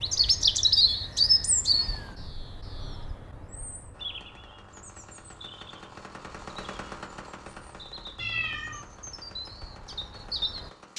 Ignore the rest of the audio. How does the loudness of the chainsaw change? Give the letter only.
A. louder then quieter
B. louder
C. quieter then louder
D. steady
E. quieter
A.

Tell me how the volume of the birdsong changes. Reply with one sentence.
The loudness of the birdsong goes down, then up.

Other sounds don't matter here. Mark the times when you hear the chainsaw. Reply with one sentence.
The chainsaw can be heard from 3.9 to 10.9 s.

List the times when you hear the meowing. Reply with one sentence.
The meowing can be heard from 1.7 to 2.1 s and from 8.2 to 8.8 s.